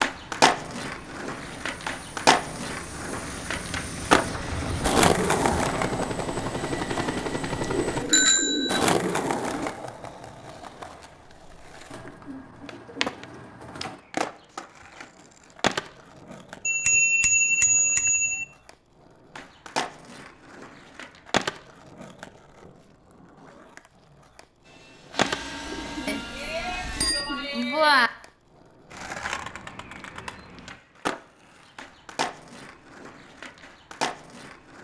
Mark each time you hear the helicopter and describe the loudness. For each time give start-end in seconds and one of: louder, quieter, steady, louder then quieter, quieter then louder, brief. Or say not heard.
0.1-8.1 louder
24.6-27.1 brief.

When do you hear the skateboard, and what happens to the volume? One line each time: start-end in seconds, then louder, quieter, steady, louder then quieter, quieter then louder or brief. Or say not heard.
0.0-34.8 quieter.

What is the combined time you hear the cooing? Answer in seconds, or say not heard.
6 s.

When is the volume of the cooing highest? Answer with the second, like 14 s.
9 s.